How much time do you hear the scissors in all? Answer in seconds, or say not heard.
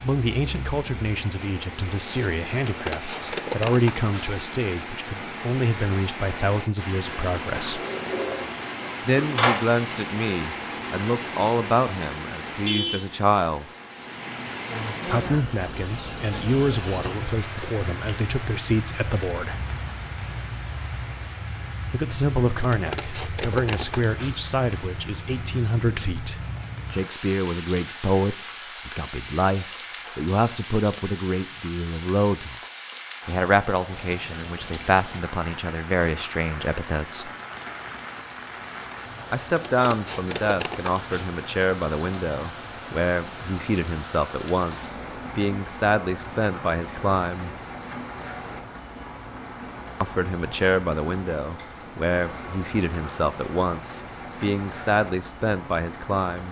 5 s.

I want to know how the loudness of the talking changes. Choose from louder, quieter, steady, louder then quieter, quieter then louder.
steady.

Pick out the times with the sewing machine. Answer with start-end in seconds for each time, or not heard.
not heard.